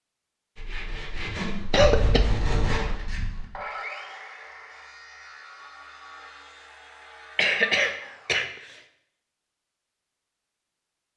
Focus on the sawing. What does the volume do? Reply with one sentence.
The loudness of the sawing goes down.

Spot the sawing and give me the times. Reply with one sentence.
You can hear the sawing from 0.6 to 8.4 s.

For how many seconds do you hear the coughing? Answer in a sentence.
The coughing can be heard for 3 seconds in total.